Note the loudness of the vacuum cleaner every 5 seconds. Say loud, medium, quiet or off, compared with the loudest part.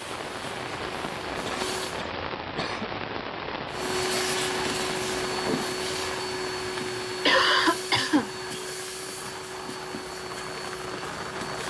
loud, loud, medium.